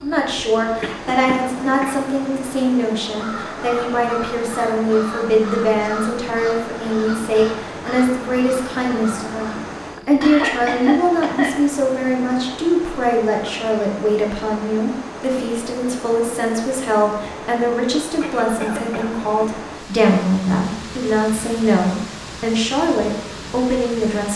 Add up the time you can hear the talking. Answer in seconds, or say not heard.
24 s.